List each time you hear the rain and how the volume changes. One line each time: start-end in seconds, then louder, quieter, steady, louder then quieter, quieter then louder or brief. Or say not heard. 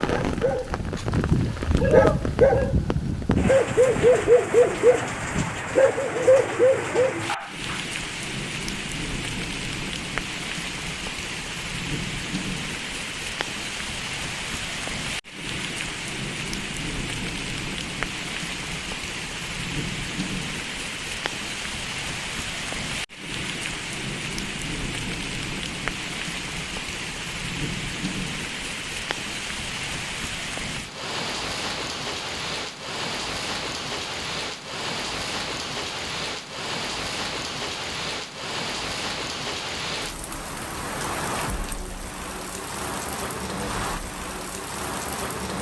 0.0-45.5 steady.